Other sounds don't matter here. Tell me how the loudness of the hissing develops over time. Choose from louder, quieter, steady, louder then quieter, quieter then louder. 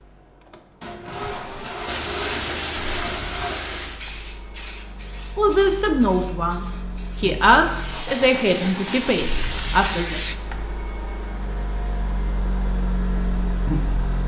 quieter then louder.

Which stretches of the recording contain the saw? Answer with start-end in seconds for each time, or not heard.
0.8-3.5.